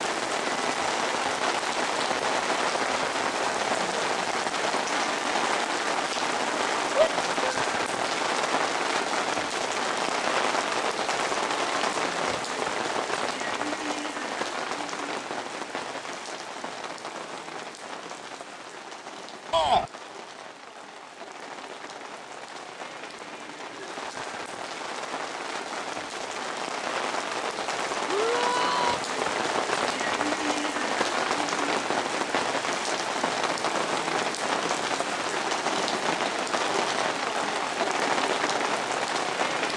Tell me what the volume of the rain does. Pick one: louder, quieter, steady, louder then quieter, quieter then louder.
quieter then louder.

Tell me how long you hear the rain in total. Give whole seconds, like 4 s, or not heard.
40 s.